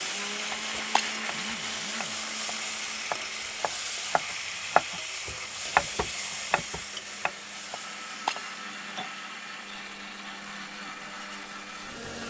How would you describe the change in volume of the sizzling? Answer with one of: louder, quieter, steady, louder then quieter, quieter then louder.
quieter.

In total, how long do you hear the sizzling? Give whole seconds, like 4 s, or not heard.
12 s.